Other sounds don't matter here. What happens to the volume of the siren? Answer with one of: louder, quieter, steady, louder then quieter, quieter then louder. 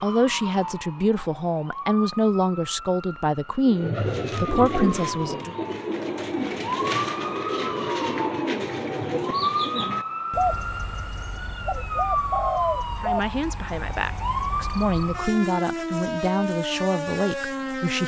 louder.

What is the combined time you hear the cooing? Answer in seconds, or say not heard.
12 s.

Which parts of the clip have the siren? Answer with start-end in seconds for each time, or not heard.
0.0-18.0.